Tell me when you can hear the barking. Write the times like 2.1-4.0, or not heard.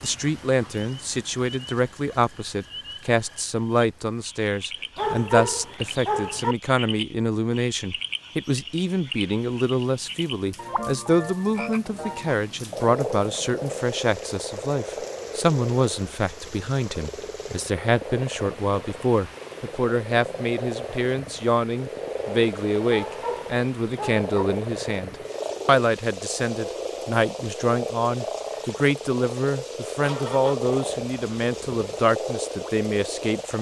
5.0-6.5, 22.9-24.4.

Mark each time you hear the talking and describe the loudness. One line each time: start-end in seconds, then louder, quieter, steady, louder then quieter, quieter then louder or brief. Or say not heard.
0.0-33.5 steady.